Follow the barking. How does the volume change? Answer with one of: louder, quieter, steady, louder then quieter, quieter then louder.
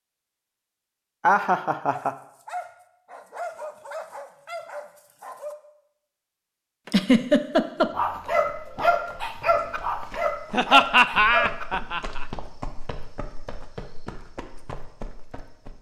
louder.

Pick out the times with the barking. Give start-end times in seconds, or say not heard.
1.9-5.5, 7.5-11.7.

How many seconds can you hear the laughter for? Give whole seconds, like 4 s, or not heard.
4 s.